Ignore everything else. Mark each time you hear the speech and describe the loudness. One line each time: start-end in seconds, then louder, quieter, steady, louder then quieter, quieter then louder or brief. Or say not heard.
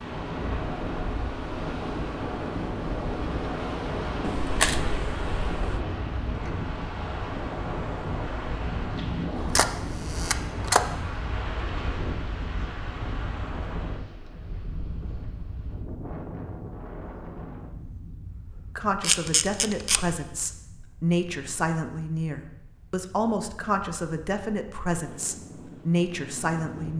18.8-26.9 steady.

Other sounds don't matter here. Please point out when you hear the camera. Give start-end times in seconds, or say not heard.
4.2-5.8, 9.3-10.8, 19.0-20.0.